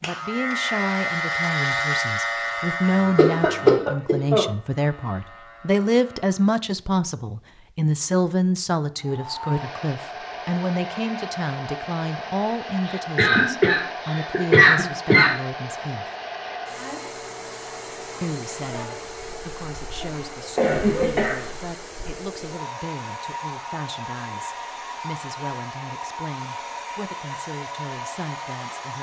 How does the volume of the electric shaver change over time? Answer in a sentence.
The volume of the electric shaver goes down.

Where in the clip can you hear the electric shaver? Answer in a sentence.
The electric shaver can be heard from 0.0 to 6.6 s.